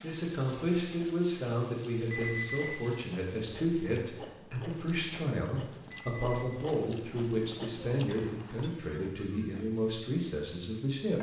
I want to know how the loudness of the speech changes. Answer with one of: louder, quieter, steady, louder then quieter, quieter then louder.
steady.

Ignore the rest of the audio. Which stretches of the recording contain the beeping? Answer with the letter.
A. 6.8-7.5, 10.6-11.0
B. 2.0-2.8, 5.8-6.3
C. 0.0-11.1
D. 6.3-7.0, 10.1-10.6
B.